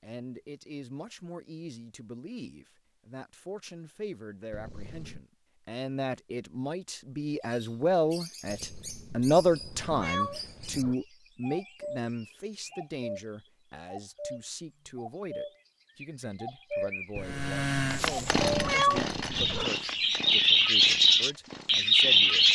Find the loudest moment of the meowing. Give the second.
19 s.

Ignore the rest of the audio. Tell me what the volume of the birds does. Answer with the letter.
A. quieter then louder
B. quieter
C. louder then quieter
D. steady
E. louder
E.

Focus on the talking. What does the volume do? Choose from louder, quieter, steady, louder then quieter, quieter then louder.
louder then quieter.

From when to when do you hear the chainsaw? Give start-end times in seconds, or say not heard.
17.2-22.4.